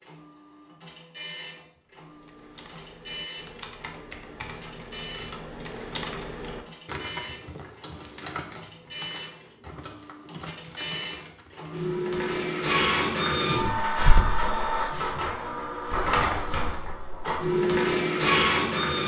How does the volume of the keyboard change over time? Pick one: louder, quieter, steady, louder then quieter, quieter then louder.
louder then quieter.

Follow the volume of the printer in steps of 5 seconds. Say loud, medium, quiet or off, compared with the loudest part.
quiet, quiet, loud, loud.